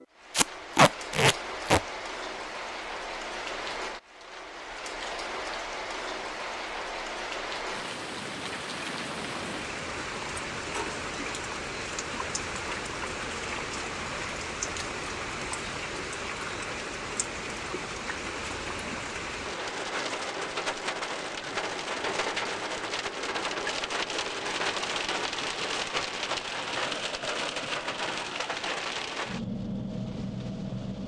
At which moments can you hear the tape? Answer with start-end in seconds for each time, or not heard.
0.3-1.8.